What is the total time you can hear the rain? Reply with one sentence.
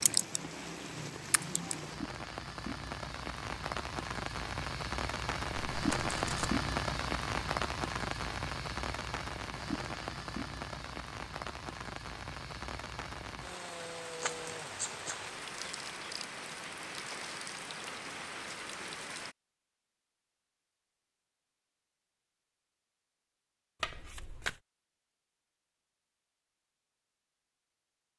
The rain can be heard for 19 seconds in total.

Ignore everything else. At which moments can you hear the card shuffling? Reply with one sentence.
The card shuffling can be heard from 5.7 to 6.5 s, from 14.2 to 15.2 s and from 23.8 to 24.6 s.